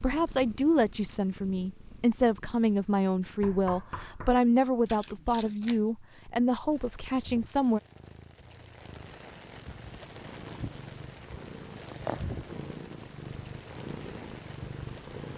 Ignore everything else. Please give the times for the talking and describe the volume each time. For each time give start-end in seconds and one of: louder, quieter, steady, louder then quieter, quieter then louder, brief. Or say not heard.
0.0-7.8 steady.